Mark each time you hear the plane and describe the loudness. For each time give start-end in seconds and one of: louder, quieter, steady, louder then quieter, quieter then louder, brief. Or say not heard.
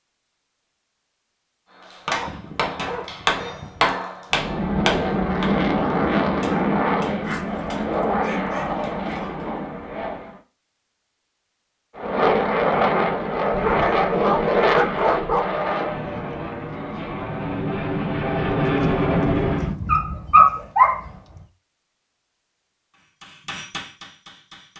4.3-10.4 quieter
11.9-19.8 quieter then louder.